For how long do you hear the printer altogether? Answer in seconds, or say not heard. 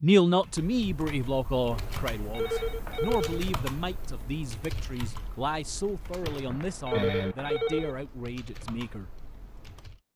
not heard.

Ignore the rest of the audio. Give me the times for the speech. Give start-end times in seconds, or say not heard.
0.0-9.2.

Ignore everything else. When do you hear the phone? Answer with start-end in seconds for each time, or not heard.
1.7-3.5, 6.2-8.0.